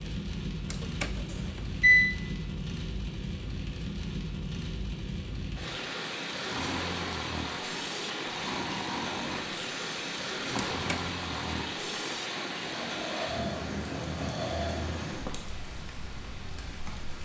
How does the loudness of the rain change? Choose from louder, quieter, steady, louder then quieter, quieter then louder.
steady.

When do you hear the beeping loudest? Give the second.
2 s.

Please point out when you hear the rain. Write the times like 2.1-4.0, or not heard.
0.0-17.1.